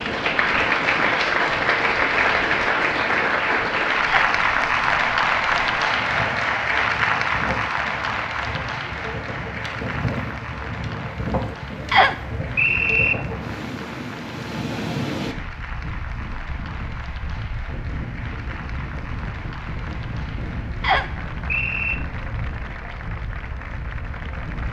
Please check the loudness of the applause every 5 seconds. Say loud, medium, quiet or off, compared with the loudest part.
loud, loud, quiet, quiet, quiet.